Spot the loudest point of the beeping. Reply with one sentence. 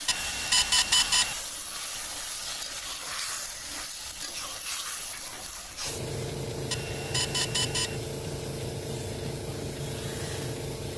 The loudest moment of the beeping is at 1 second.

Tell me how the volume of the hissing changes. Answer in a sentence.
The loudness of the hissing stays about the same.